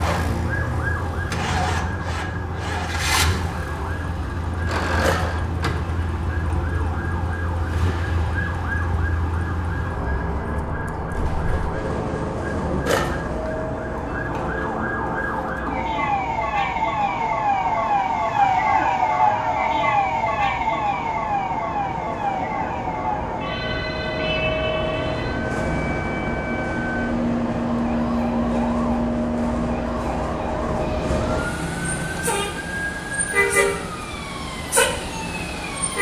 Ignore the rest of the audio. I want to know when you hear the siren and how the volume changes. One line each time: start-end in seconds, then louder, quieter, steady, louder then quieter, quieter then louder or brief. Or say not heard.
0.2-35.9 louder then quieter.